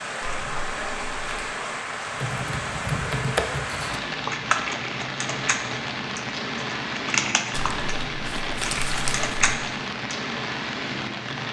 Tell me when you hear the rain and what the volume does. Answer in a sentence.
The rain can be heard from 0.0 to 11.4 s, at a steady volume.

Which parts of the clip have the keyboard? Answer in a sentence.
The keyboard can be heard from 2.1 to 10.2 s.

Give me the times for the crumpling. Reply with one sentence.
You can hear the crumpling from 0.2 to 1.5 s and from 7.5 to 9.3 s.